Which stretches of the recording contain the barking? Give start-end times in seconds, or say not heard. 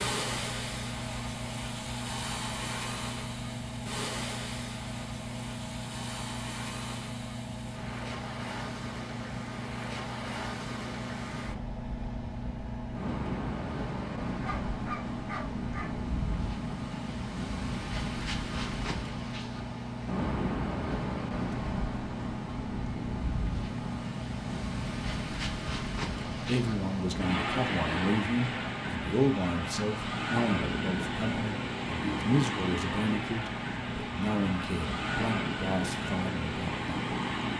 14.2-15.9.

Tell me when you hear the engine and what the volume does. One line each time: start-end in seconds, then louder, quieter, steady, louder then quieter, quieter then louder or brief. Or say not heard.
0.0-37.5 steady.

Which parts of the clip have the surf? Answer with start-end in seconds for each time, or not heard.
0.0-37.5.